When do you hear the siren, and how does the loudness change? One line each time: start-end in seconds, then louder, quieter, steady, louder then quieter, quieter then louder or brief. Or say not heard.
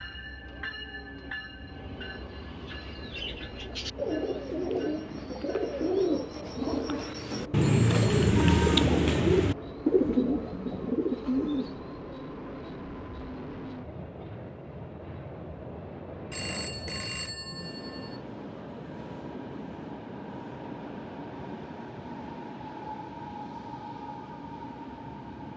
not heard.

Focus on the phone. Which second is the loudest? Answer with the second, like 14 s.
17 s.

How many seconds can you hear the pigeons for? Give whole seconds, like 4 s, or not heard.
9 s.